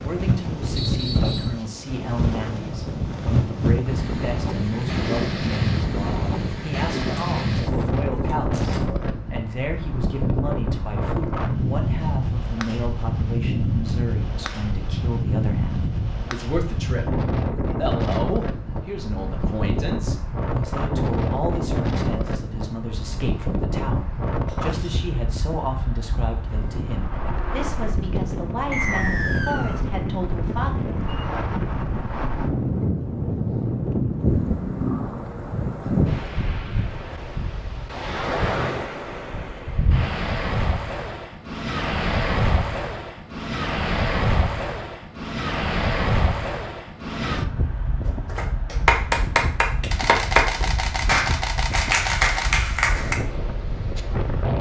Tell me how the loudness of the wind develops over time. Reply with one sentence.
The loudness of the wind stays about the same.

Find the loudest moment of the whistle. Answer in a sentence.
The loudest moment of the whistle is at 29 seconds.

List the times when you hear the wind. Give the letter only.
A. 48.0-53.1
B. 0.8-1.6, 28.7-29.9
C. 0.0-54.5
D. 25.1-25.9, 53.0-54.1
C.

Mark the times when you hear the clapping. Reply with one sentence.
You can hear the clapping from 48.0 to 53.1 s.